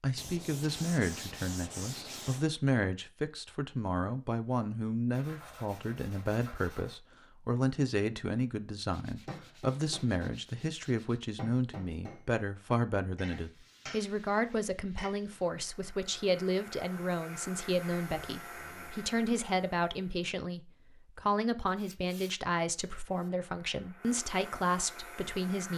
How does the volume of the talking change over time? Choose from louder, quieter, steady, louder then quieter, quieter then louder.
steady.